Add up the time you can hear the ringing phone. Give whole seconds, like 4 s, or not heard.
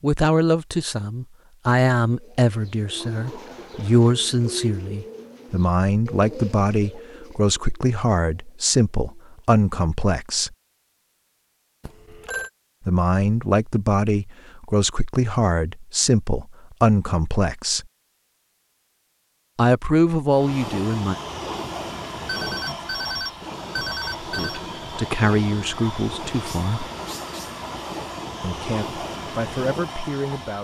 3 s.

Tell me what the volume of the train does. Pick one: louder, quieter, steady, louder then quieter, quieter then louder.
steady.